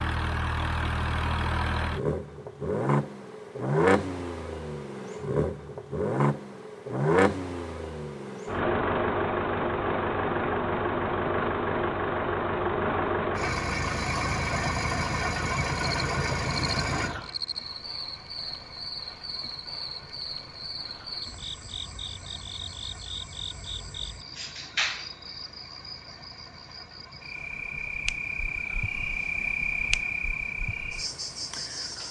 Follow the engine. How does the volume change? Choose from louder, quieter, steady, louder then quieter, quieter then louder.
quieter.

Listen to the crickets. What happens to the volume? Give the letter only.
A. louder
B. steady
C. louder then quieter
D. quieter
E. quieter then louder
A.